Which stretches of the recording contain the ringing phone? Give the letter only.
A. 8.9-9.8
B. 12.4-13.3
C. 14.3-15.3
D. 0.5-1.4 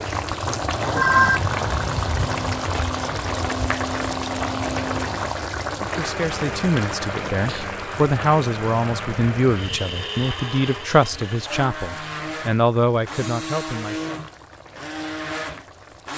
D.